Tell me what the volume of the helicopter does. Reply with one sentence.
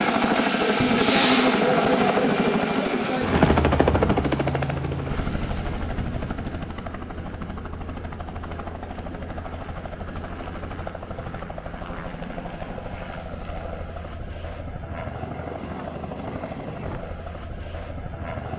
The volume of the helicopter goes down.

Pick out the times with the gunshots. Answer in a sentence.
The gunshots can be heard from 0.8 to 2.4 s.